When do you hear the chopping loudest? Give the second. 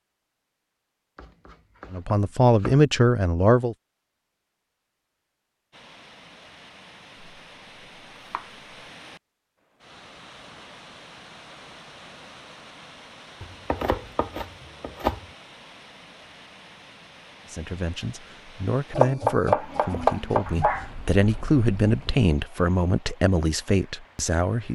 19 s.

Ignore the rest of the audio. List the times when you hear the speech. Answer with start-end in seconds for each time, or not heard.
1.9-3.8, 17.5-24.7.